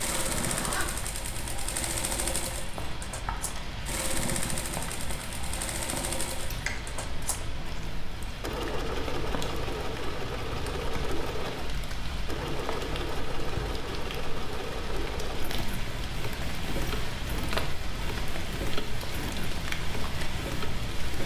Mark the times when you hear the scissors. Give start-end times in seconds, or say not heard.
6.6-8.2.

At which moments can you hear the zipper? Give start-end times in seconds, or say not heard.
0.1-0.9.